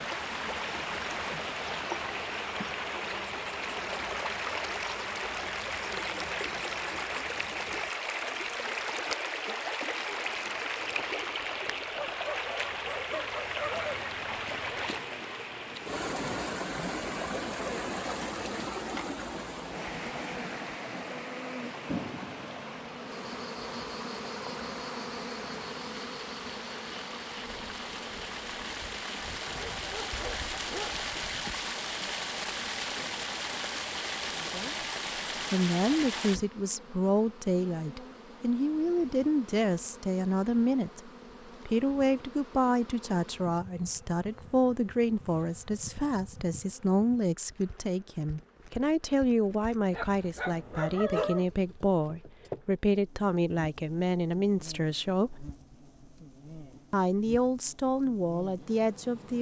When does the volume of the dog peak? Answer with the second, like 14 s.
51 s.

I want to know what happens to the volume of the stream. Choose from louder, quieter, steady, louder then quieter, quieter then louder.
quieter then louder.